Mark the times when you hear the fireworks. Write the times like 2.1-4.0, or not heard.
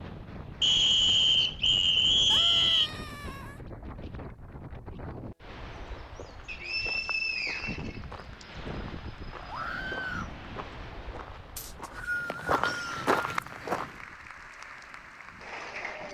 not heard.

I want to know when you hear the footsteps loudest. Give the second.
13 s.